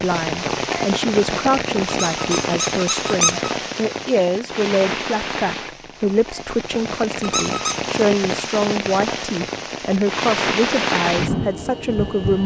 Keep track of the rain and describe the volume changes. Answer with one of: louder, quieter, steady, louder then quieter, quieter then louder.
quieter then louder.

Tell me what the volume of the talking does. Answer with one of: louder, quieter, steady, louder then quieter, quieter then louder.
steady.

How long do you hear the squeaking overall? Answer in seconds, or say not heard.
2 s.